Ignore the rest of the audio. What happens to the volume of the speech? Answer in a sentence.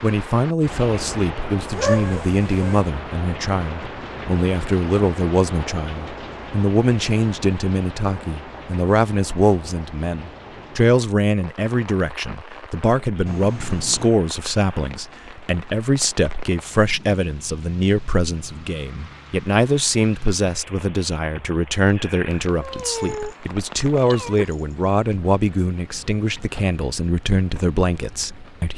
The volume of the speech stays about the same.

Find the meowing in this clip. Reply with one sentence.
You can hear the meowing from 1.7 to 2.9 s, from 13.2 to 14.1 s and from 22.3 to 24.8 s.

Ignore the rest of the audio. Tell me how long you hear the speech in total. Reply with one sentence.
You can hear the speech for 29 seconds altogether.